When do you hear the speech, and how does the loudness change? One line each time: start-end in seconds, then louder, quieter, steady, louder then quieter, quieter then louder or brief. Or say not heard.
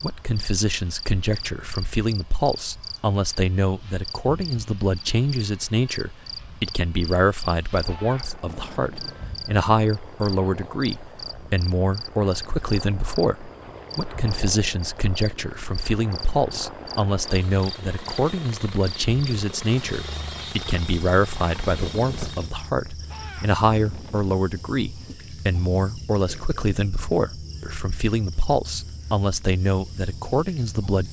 0.0-31.0 steady.